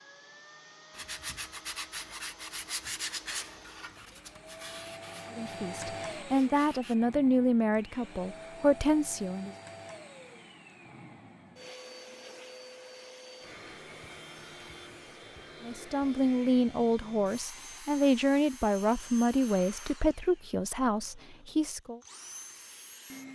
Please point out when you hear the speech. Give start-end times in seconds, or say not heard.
5.3-9.6, 15.6-22.0.